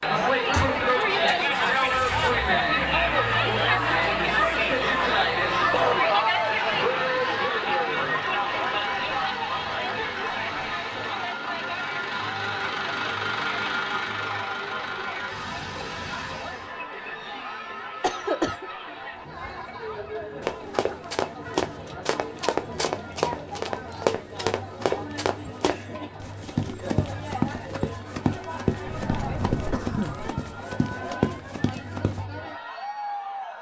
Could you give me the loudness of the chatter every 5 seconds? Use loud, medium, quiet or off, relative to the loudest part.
loud, loud, medium, quiet, quiet, quiet, quiet.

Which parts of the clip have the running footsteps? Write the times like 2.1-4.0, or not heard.
20.4-32.2.